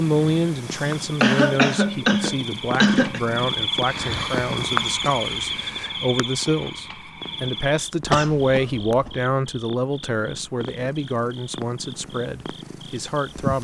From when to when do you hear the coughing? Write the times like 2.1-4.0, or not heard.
1.2-3.2, 8.1-9.1.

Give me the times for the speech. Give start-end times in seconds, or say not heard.
0.0-13.5.